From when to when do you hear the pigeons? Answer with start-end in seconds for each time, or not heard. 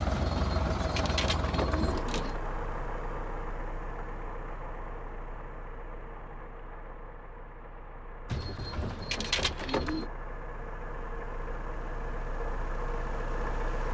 0.1-2.4, 8.2-10.1.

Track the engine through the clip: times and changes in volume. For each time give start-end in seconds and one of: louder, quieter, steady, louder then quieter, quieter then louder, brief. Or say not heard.
0.0-13.8 quieter then louder.